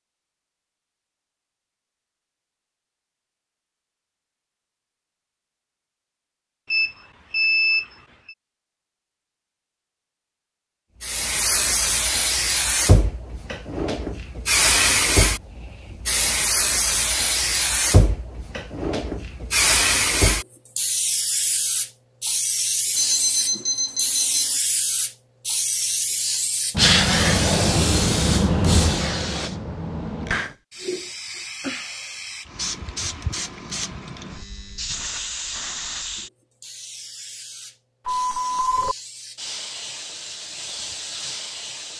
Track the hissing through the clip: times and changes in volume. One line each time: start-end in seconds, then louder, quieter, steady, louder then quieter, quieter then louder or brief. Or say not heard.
11.0-41.9 quieter.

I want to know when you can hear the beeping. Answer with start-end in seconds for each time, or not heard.
6.7-8.3, 22.9-24.6, 38.0-39.0.